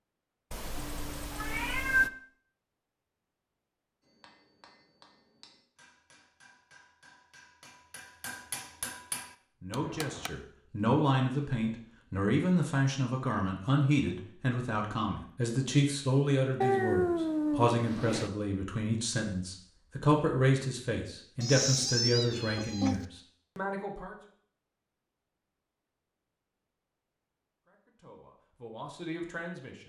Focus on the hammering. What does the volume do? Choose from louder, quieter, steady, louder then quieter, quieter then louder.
louder.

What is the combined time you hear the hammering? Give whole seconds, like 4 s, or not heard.
6 s.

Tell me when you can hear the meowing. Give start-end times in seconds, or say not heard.
0.5-2.1, 16.6-18.3, 21.4-23.1.